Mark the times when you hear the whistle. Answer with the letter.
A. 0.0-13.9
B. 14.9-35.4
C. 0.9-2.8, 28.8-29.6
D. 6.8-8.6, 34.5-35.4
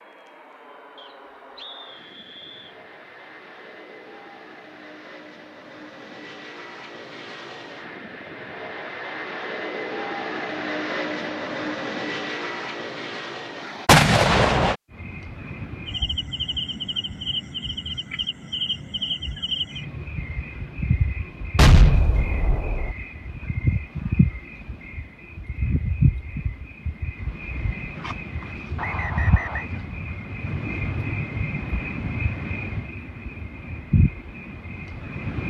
C.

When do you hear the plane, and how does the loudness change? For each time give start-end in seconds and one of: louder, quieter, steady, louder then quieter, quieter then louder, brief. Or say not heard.
0.0-13.9 louder.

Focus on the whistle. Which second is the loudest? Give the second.
29 s.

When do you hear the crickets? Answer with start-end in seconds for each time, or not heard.
14.9-35.4.